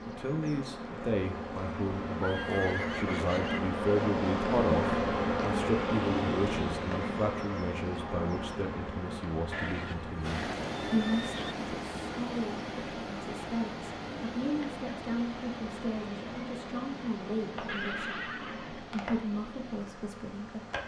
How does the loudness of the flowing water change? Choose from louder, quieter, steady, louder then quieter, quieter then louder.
quieter.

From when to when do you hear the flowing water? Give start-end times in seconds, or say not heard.
10.2-20.8.